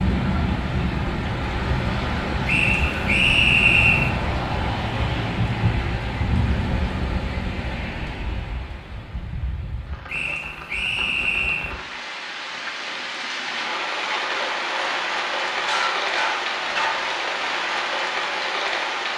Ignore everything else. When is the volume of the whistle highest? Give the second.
4 s.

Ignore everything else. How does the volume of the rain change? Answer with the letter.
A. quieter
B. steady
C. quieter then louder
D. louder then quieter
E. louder
C.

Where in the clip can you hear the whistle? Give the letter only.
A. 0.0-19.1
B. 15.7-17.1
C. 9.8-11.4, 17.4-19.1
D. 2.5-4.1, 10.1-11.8
D.